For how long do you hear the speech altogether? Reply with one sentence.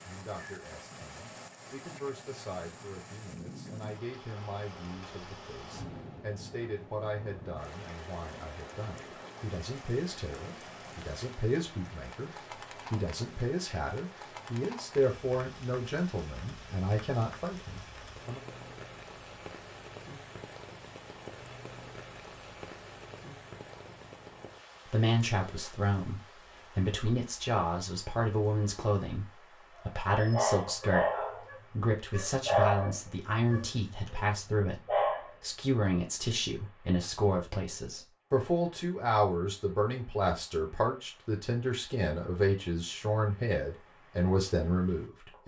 You can hear the speech for 39 seconds altogether.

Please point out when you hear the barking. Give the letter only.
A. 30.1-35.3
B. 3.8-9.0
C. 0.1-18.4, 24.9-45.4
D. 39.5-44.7
A.